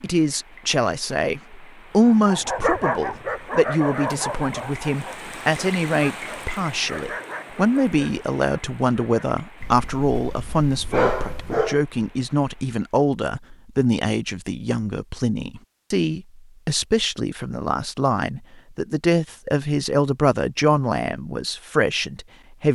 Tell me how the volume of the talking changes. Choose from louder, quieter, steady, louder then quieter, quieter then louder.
steady.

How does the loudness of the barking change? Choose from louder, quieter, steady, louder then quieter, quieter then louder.
quieter then louder.